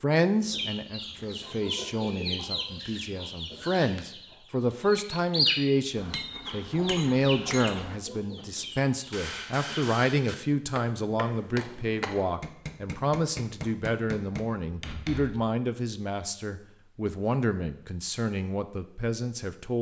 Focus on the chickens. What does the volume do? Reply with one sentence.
The volume of the chickens goes up, then down.